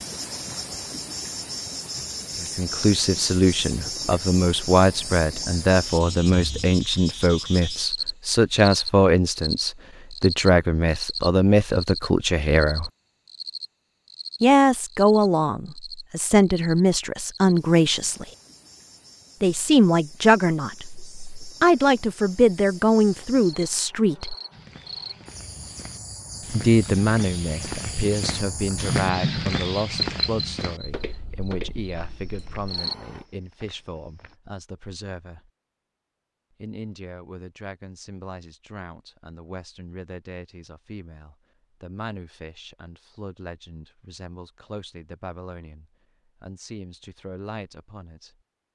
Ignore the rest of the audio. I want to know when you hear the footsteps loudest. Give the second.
29 s.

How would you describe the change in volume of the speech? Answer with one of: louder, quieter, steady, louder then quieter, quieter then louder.
quieter.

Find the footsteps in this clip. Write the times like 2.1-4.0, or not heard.
24.5-34.4.